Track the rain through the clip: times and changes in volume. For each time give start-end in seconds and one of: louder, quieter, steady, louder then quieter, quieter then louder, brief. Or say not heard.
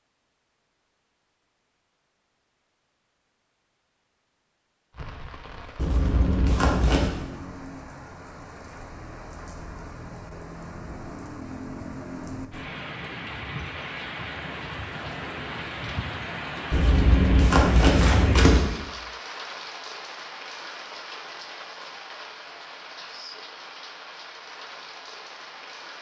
4.9-25.9 louder then quieter.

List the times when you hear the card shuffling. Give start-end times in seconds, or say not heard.
5.8-7.1, 16.7-18.7.